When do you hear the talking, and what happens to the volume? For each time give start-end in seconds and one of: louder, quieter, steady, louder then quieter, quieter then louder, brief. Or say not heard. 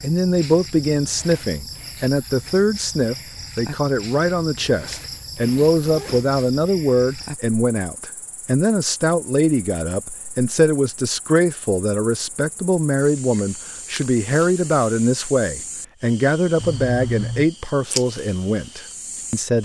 0.0-19.6 steady.